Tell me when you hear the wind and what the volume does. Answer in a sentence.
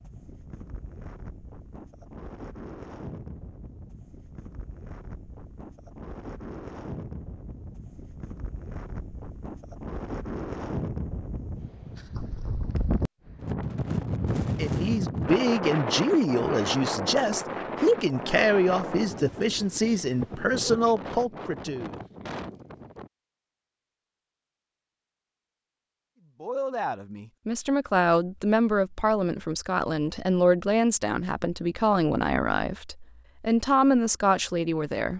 The wind can be heard from 0.0 to 23.1 s, getting louder then quieter.